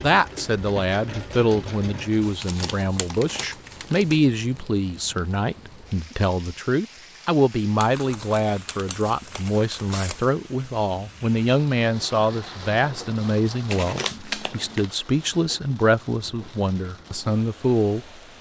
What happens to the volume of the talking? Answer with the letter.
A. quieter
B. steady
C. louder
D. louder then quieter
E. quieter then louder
B.